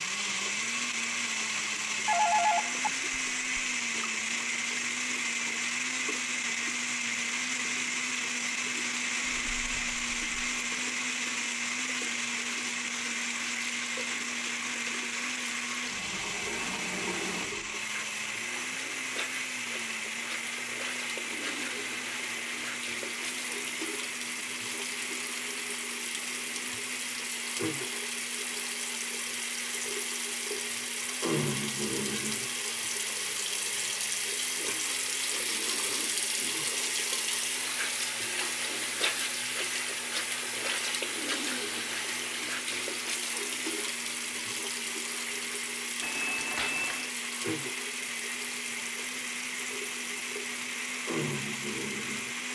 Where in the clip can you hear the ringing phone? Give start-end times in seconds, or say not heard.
2.0-3.6, 46.0-47.1.